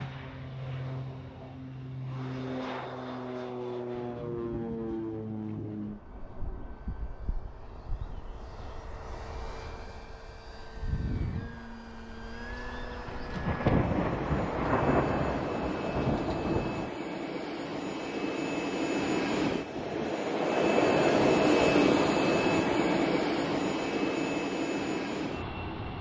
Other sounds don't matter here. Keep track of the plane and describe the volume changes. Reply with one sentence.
The loudness of the plane goes down, then up.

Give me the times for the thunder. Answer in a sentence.
The thunder can be heard from 4.0 to 6.0 s and from 13.1 to 16.9 s.